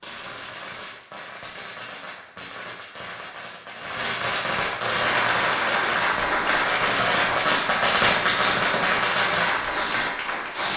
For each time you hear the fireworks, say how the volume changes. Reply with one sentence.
You can hear the fireworks from 0.0 to 10.7 s, getting louder.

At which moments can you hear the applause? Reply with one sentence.
The applause can be heard from 4.9 to 10.7 s.